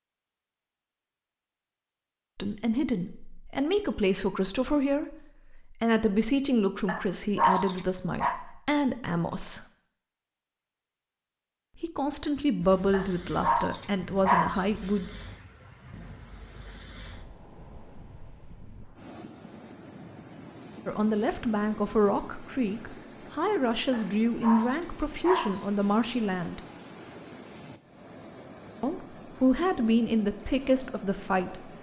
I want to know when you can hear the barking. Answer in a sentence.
The barking can be heard from 6.8 to 8.4 s, from 12.9 to 14.9 s and from 23.9 to 25.9 s.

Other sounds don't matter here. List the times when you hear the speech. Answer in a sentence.
You can hear the speech from 2.4 to 9.7 s, from 11.8 to 15.1 s, from 20.9 to 26.6 s and from 28.8 to 31.6 s.